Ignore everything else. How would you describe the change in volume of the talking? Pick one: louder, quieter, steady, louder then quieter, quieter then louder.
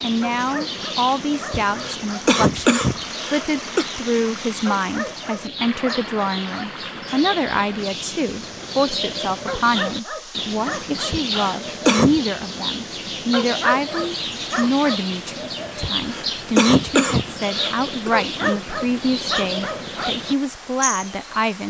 steady.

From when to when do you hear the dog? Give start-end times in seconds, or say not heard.
0.2-2.2, 4.7-6.7, 9.4-11.5, 13.3-15.0, 18.1-20.1.